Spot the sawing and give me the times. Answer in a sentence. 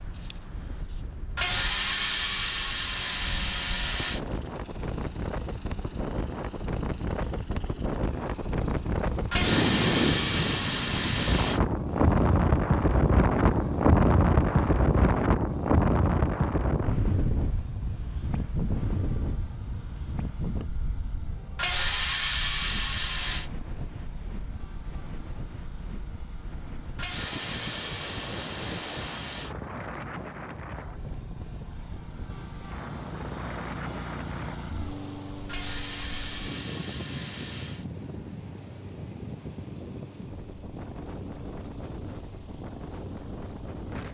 You can hear the sawing from 1.4 to 4.2 s, from 9.3 to 11.6 s, from 21.6 to 23.5 s, from 26.9 to 29.6 s and from 35.5 to 37.9 s.